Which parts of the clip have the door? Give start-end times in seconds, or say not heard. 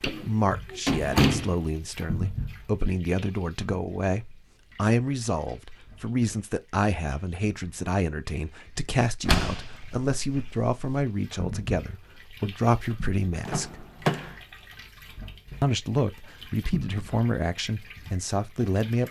0.0-1.6, 9.2-11.1, 13.4-14.3.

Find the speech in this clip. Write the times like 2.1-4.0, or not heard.
0.1-13.8, 15.6-19.0.